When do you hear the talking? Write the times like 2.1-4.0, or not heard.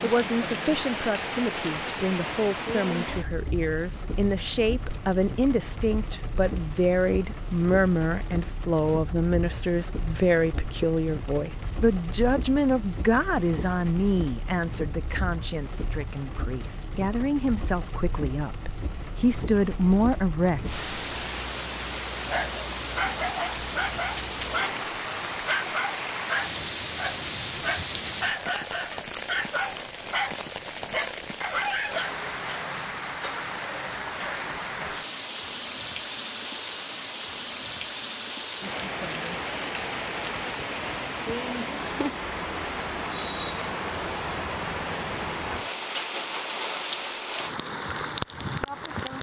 0.0-20.8.